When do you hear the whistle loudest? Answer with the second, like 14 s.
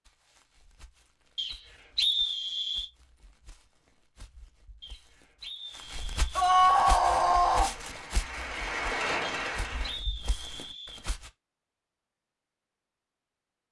2 s.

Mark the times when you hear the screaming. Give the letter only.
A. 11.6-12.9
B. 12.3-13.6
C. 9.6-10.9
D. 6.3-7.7
D.